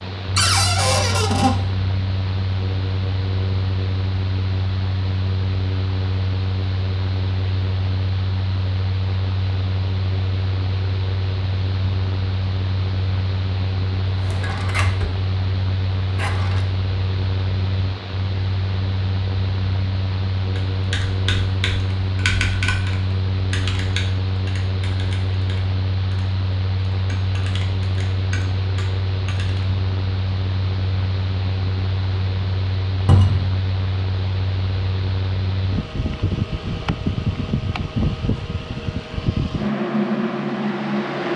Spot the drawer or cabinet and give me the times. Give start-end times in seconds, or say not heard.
0.3-1.6, 14.1-15.2, 16.1-16.6, 33.0-33.5.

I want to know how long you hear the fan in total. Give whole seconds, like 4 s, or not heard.
41 s.